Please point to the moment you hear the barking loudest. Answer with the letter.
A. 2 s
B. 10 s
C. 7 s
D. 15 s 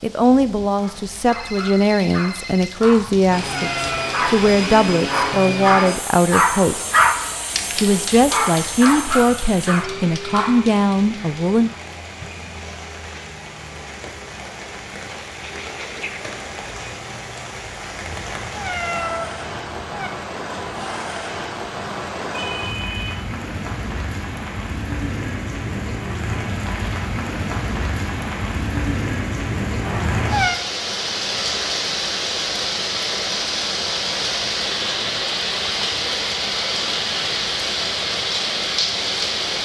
C.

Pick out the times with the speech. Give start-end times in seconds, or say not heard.
0.0-6.8, 7.8-11.7.